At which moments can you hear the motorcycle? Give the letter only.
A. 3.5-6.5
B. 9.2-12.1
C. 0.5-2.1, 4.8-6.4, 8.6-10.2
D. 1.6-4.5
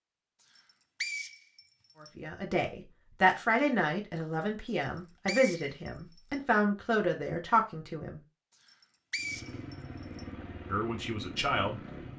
B.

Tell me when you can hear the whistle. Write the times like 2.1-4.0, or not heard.
0.5-2.1, 4.8-6.4, 8.6-10.2.